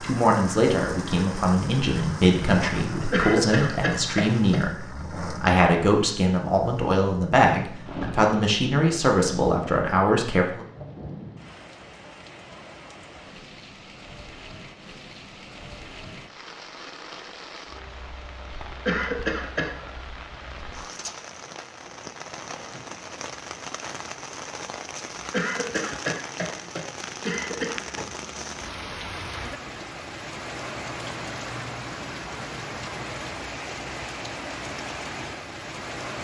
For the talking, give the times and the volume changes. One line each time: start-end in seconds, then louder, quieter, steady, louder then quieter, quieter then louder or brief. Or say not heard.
0.0-10.7 steady.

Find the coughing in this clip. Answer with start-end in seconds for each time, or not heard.
3.1-4.6, 18.9-19.8, 25.3-27.8.